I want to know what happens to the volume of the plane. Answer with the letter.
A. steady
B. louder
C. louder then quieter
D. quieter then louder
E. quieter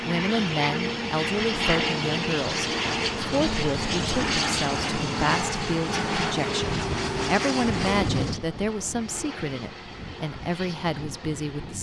E.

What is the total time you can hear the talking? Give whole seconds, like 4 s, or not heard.
12 s.